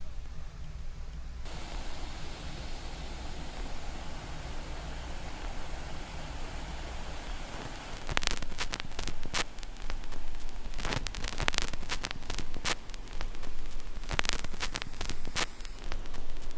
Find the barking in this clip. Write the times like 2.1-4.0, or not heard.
not heard.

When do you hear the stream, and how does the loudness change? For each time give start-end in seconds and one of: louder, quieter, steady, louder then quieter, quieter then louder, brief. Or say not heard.
0.0-16.5 quieter.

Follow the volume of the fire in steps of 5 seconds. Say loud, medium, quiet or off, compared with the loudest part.
quiet, loud, loud, loud.